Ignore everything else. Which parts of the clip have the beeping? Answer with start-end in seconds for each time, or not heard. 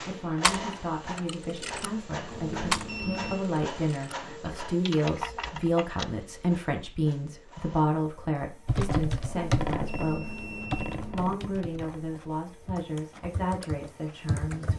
2.3-3.4, 9.2-11.3.